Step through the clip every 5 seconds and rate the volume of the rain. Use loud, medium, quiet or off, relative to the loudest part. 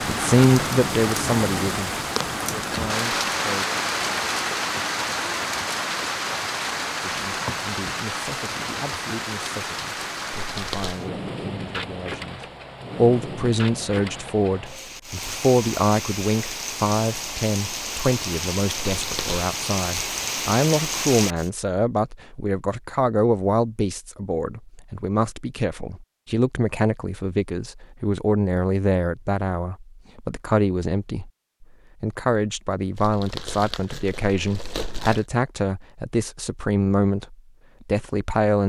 loud, loud, medium, medium, loud, off, off, off.